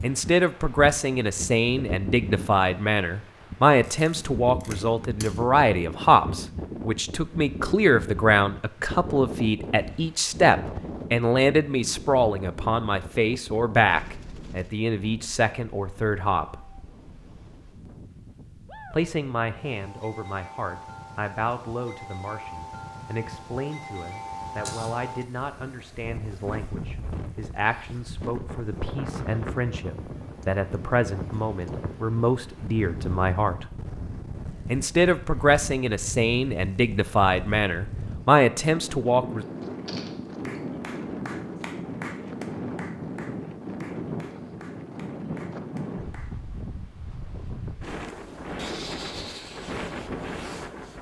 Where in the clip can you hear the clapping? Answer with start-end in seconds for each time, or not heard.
40.4-46.4.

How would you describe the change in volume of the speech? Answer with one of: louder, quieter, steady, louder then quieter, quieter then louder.
quieter then louder.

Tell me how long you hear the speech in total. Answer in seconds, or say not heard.
36 s.